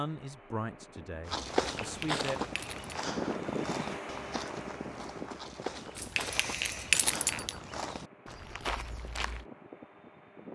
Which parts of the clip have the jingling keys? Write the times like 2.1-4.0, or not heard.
1.8-3.0, 6.0-7.5.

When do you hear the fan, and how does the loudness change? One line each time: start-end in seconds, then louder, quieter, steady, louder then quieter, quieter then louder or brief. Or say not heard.
0.0-10.5 louder then quieter.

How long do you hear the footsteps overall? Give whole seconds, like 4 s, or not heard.
8 s.